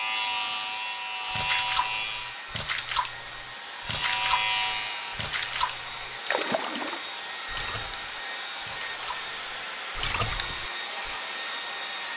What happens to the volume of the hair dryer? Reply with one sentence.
The volume of the hair dryer goes up.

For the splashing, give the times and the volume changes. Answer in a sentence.
The splashing can be heard from 1.4 to 11.2 s, getting quieter then louder.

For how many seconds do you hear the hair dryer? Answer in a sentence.
The hair dryer can be heard for 12 seconds in total.